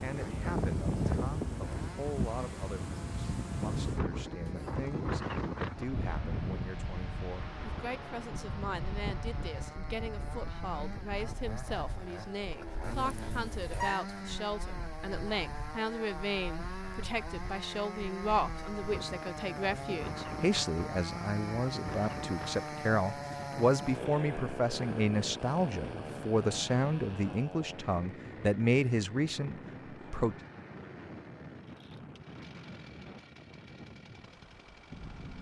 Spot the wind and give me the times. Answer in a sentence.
The wind can be heard from 0.0 to 35.3 s.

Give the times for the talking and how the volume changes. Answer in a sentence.
The talking can be heard from 0.0 to 30.4 s, getting louder.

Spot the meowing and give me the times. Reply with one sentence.
The meowing can be heard from 12.8 to 14.1 s.